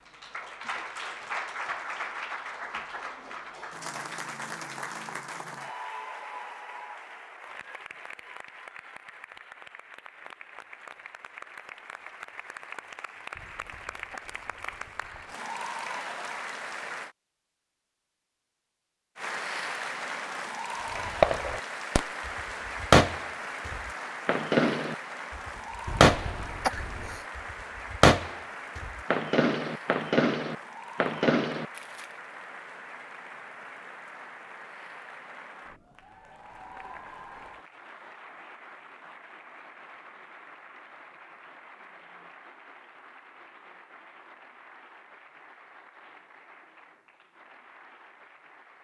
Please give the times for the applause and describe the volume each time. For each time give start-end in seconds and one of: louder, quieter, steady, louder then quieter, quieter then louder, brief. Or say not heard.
0.0-17.1 quieter then louder
19.1-48.7 quieter.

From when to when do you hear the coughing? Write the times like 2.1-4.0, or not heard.
13.3-15.3, 25.9-27.2.